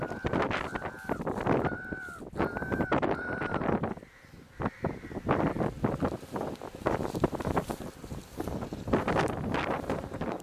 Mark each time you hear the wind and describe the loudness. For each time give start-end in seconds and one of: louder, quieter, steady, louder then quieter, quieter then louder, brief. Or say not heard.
0.0-10.3 steady.